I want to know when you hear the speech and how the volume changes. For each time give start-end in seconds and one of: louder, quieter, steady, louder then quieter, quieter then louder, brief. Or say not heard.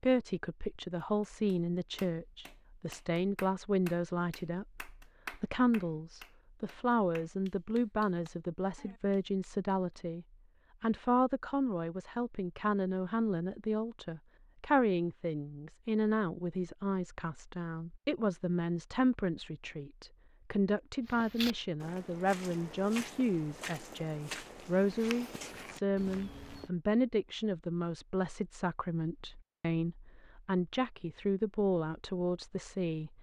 0.0-33.1 steady.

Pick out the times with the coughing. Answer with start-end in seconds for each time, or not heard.
not heard.